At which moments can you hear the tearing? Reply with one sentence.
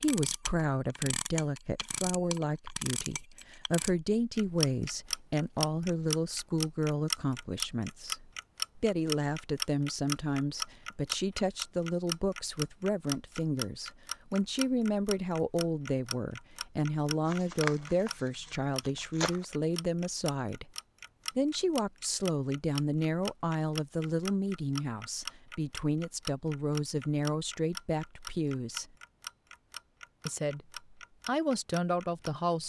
The tearing can be heard from 17.2 to 19.4 s.